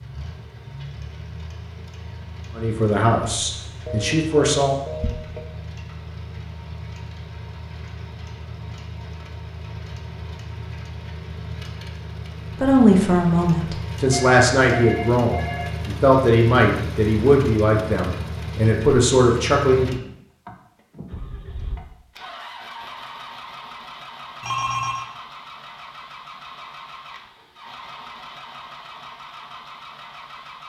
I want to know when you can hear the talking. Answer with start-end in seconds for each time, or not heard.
2.5-4.8, 12.6-19.9.